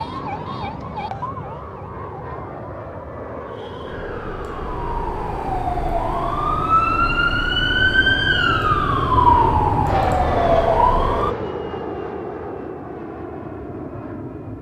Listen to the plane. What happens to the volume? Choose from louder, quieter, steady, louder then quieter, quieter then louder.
louder then quieter.